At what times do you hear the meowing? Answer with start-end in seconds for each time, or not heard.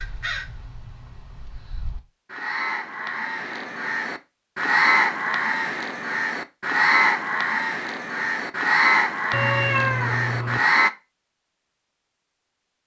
9.3-10.6.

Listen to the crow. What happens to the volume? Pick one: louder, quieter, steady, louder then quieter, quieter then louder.
louder.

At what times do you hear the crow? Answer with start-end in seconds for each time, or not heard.
0.0-10.9.